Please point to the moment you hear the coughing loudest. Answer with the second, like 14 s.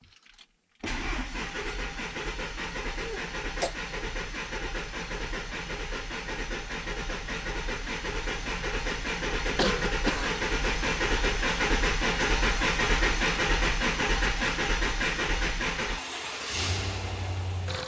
10 s.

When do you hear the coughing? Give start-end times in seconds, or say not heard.
3.0-3.8, 9.6-10.4.